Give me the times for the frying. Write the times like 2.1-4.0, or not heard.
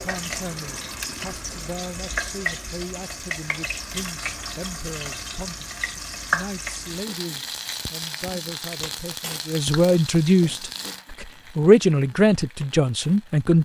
0.0-13.5.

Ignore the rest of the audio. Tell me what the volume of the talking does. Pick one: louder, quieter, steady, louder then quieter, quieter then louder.
louder.